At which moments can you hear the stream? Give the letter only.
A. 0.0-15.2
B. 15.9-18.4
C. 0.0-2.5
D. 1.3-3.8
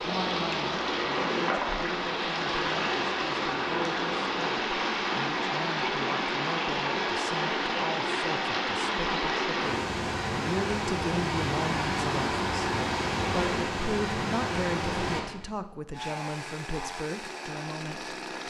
A.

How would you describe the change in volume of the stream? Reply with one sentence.
The loudness of the stream stays about the same.